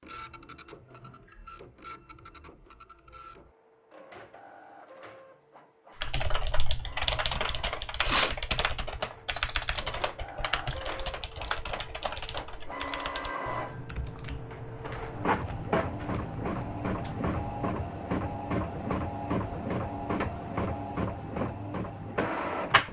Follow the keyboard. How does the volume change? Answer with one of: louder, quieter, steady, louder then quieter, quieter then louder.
quieter.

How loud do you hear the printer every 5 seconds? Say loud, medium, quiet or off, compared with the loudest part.
quiet, quiet, medium, loud, loud.